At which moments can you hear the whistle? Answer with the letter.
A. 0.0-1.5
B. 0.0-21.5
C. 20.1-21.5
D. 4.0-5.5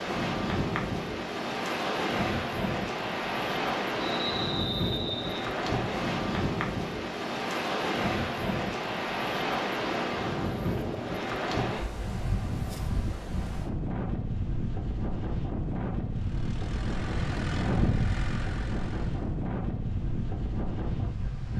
D.